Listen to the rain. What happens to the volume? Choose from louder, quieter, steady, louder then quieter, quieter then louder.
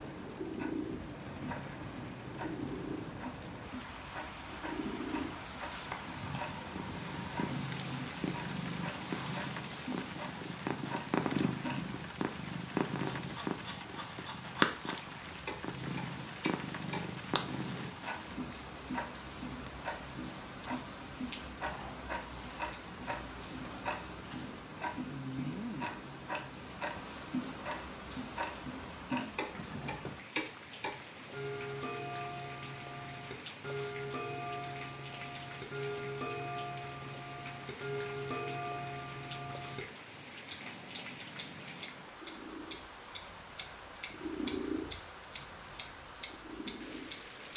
steady.